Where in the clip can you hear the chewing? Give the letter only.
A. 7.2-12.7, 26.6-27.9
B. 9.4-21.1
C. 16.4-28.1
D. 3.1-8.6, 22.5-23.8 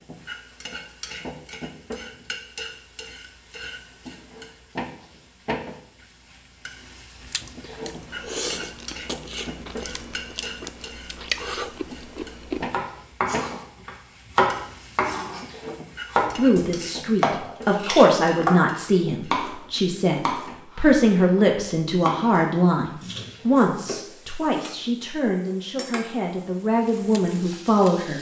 A.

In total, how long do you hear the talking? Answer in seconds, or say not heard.
12 s.